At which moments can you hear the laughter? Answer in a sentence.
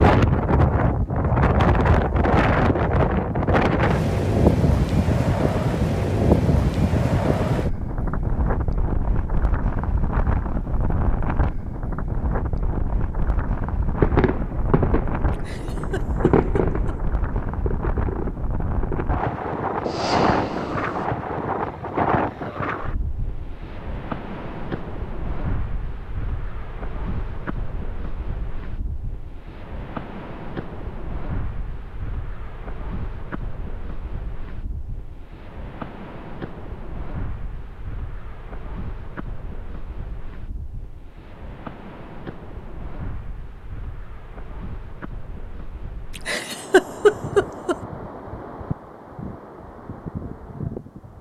You can hear the laughter from 15.3 to 16.9 s and from 46.1 to 47.8 s.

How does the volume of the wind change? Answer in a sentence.
The loudness of the wind goes down.